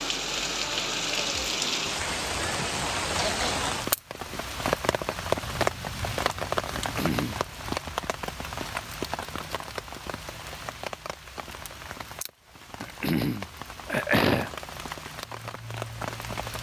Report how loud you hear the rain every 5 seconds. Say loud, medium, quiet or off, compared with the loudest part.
loud, loud, medium, medium.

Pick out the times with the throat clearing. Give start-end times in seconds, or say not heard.
2.0-3.7, 6.8-7.4, 12.8-14.5.